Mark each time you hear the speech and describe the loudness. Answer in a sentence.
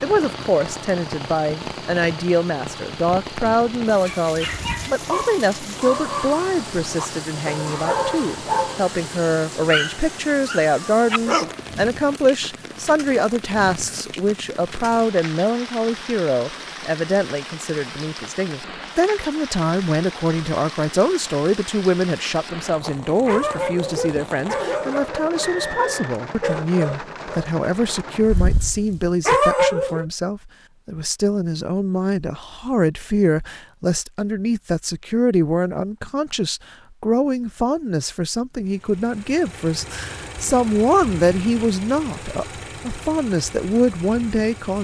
You can hear the speech from 0.0 to 44.7 s, at a steady volume.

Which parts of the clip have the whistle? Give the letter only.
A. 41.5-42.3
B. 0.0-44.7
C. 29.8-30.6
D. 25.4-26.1
D.